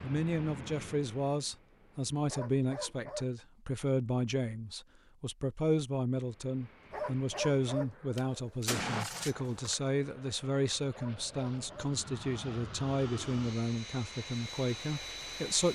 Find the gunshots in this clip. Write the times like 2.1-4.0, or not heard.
8.2-9.8.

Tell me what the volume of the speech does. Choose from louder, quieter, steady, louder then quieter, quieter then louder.
steady.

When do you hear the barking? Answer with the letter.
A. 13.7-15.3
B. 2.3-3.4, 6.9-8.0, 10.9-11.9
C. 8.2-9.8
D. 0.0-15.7
B.